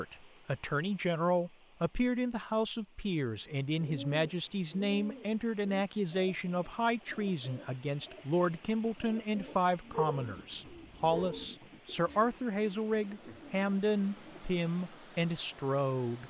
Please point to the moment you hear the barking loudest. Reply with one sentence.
The volume of the barking peaks at 10 seconds.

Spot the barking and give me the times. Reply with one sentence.
The barking can be heard from 9.4 to 11.5 s.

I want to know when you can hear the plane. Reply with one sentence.
You can't hear the plane here.